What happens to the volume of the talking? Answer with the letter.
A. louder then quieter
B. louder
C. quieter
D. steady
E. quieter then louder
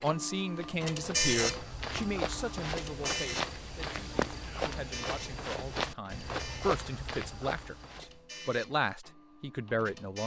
E.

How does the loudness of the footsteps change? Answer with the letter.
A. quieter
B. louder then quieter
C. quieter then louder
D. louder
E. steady
E.